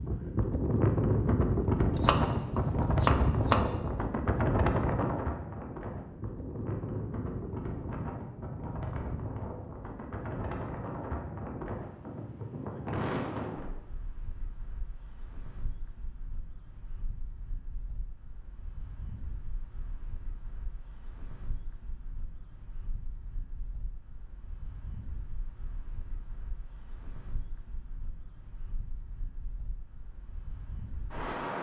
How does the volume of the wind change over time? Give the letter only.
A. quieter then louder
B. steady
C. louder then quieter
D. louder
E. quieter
E.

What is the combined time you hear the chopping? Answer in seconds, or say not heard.
2 s.